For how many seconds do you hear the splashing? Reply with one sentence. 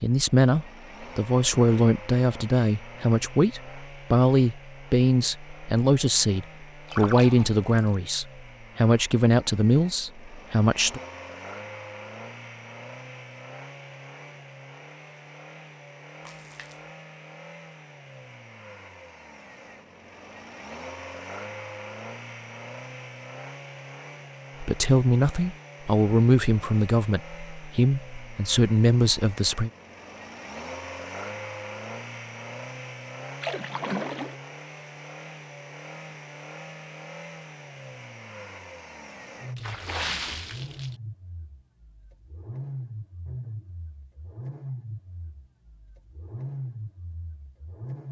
The splashing can be heard for 4 seconds in total.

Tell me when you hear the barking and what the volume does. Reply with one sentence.
The barking can't be heard in this clip.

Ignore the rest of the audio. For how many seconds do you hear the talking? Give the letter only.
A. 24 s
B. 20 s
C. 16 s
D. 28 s
C.